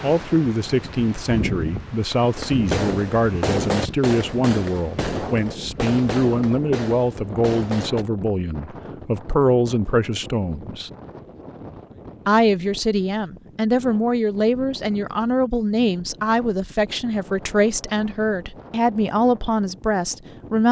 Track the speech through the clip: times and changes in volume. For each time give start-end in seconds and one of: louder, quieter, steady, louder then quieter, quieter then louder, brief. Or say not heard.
0.0-10.9 steady
12.2-20.6 steady.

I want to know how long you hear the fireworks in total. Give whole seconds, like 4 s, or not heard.
6 s.